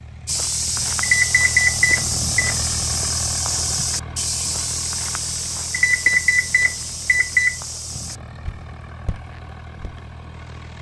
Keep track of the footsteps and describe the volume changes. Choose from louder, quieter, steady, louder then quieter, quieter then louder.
quieter.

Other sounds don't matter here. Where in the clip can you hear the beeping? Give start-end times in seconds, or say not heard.
1.0-2.5, 5.7-7.6.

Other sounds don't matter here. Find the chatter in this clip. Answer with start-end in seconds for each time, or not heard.
not heard.